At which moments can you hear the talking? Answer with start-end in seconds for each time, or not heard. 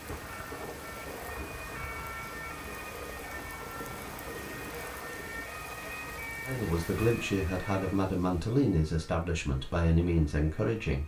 6.5-11.0.